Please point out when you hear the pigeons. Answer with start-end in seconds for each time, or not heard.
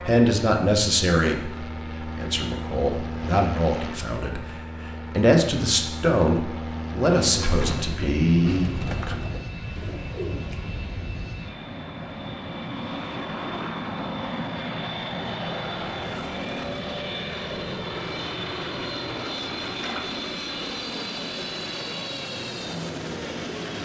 7.3-10.7.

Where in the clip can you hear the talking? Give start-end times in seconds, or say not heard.
0.0-9.2.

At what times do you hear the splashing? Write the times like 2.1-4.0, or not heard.
19.8-20.2.